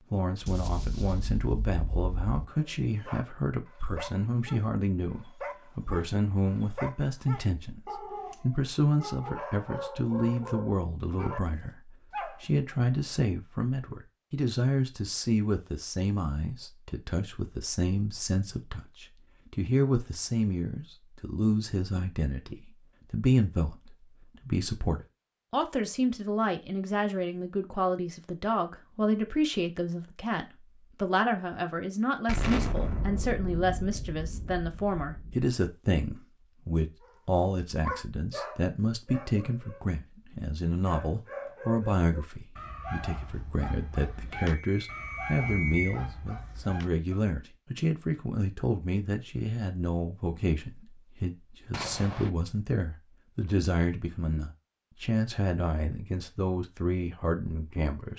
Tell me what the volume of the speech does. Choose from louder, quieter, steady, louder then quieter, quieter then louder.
steady.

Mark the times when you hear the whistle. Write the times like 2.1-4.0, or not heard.
44.5-45.9.